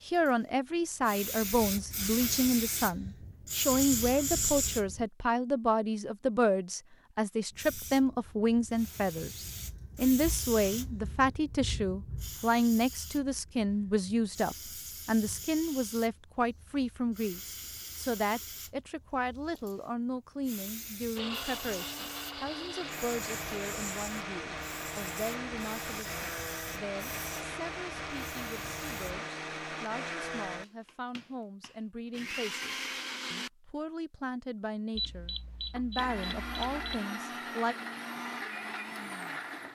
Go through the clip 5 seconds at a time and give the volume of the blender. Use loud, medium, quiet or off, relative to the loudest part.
off, off, off, off, loud, loud, loud, loud.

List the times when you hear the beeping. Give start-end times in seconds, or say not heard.
35.0-37.0.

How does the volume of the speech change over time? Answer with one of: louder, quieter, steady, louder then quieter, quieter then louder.
quieter.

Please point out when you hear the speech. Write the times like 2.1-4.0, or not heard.
0.1-37.8.